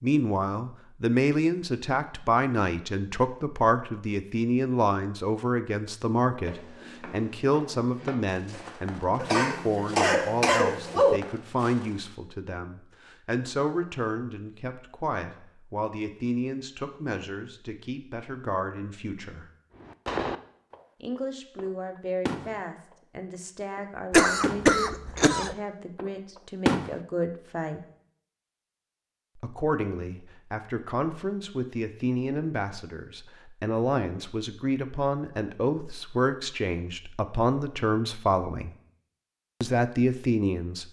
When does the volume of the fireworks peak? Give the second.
27 s.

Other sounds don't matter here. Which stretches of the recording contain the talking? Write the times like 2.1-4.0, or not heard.
0.0-19.5, 21.0-27.8, 29.4-38.7, 39.6-40.8.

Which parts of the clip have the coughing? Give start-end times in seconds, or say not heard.
9.2-11.2, 24.1-25.6.